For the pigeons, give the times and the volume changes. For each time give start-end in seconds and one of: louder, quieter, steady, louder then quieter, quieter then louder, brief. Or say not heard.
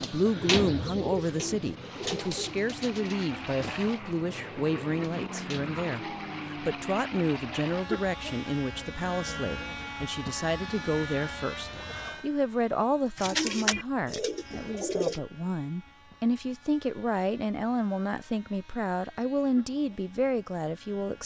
0.0-5.8 quieter
13.2-15.2 brief.